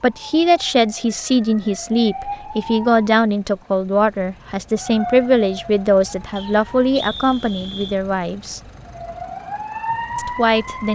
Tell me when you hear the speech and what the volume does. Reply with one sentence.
You can hear the speech from 0.0 to 8.6 s, at a steady volume; and briefly from 10.2 to 10.9 s.